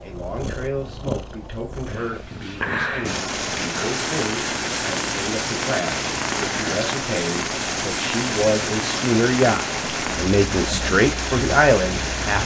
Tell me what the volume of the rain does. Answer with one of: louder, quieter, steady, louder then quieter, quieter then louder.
steady.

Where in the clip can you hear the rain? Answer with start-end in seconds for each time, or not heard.
3.0-12.4.